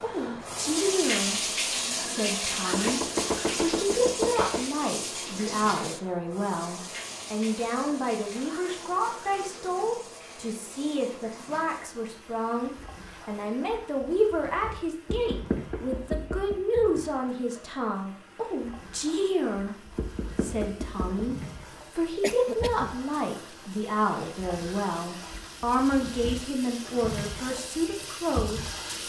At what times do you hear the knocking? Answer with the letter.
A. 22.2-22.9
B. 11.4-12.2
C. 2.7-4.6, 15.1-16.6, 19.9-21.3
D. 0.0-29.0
C.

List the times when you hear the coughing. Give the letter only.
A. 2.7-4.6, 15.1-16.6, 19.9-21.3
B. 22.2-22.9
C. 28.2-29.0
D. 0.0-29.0
B.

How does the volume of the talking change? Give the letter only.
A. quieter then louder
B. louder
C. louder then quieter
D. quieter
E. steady
E.